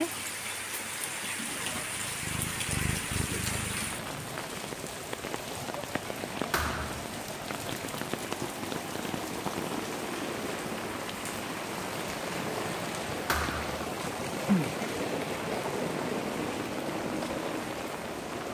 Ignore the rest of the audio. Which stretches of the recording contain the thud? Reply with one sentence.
The thud can be heard from 6.5 to 7.1 s and from 13.2 to 13.9 s.